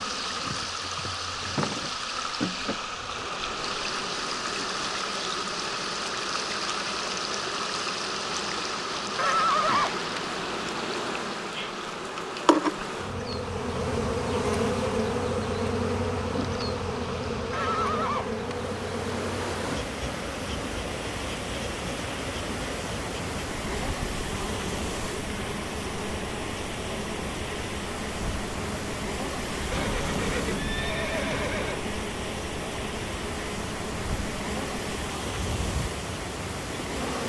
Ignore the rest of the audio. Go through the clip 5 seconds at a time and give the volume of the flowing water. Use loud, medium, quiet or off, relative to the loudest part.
loud, loud, medium, medium, loud, loud, loud, loud.